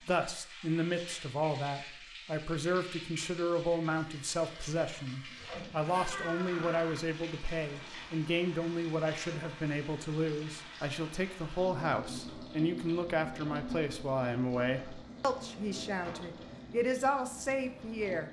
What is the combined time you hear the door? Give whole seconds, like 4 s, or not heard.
2 s.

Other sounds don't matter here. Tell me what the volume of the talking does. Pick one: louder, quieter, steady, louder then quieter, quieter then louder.
steady.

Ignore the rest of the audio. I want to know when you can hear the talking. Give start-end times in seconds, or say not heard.
0.1-18.2.